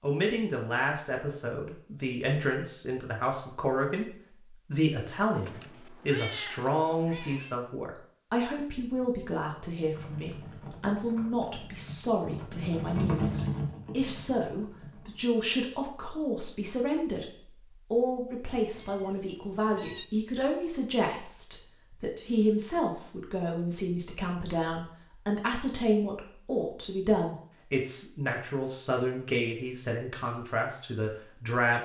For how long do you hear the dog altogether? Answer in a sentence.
The dog can't be heard in this clip.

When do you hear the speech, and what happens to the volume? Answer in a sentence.
You can hear the speech from 0.0 to 17.2 s, at a steady volume; and from 17.9 to 31.8 s, at a steady volume.